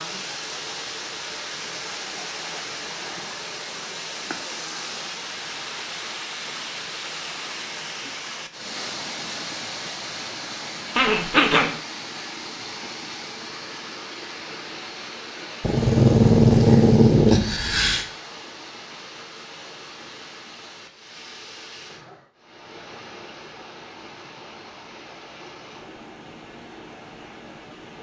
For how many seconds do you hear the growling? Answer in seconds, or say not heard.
3 s.